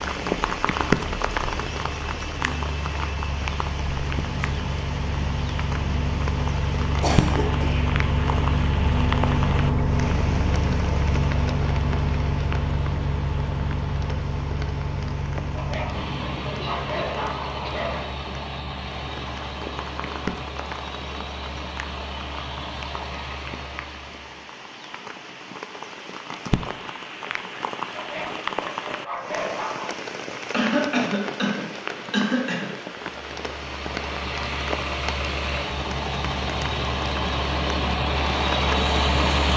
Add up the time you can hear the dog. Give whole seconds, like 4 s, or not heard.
5 s.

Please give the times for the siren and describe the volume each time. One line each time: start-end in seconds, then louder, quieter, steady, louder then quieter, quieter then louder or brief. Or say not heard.
not heard.